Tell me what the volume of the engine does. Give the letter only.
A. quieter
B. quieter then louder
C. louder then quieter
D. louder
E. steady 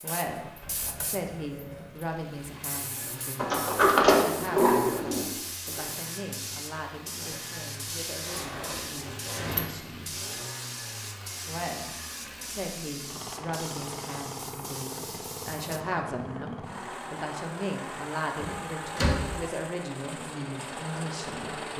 D.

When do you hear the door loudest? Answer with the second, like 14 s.
4 s.